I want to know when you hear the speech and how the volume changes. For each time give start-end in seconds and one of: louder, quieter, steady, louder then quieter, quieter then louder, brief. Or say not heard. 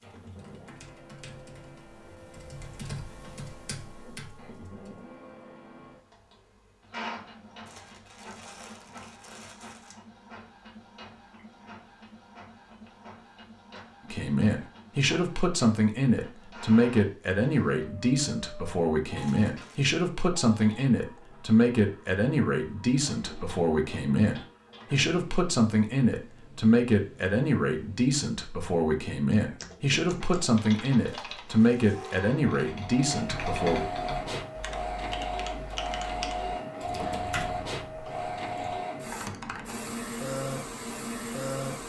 14.1-33.9 steady.